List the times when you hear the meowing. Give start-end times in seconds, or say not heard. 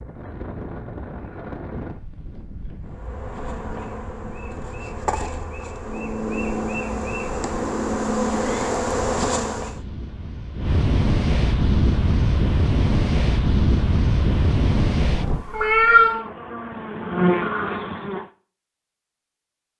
15.2-16.2.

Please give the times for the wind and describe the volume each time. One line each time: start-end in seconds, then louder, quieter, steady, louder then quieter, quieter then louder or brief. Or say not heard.
0.0-15.4 quieter then louder.